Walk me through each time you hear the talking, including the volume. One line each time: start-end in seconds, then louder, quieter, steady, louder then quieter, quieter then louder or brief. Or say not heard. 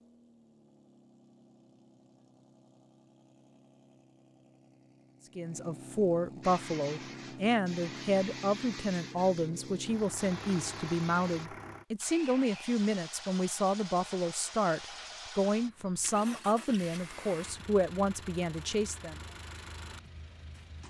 5.3-19.2 steady.